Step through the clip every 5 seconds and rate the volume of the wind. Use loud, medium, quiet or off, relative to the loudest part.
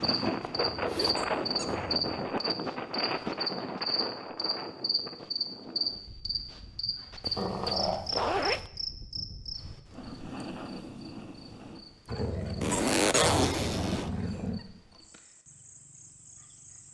loud, quiet, off, off.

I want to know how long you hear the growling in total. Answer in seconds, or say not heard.
5 s.